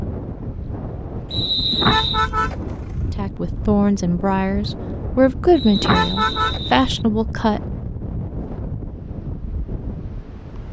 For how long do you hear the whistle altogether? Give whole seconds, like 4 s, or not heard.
2 s.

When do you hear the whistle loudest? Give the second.
2 s.